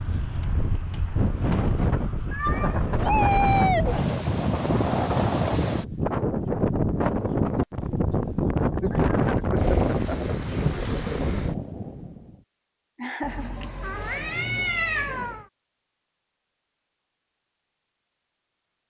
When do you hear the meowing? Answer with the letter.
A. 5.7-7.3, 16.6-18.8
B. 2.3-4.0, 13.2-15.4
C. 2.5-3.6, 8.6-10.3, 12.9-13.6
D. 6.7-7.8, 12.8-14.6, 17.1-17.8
B.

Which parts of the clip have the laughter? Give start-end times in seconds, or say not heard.
2.5-3.6, 8.6-10.3, 12.9-13.6.